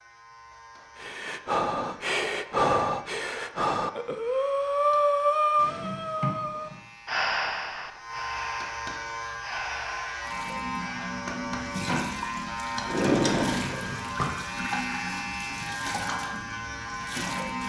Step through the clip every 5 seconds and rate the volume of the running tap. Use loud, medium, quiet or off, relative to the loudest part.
off, off, loud, loud.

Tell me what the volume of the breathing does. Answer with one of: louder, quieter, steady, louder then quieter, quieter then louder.
quieter.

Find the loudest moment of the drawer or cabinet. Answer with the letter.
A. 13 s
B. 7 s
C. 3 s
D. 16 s
A.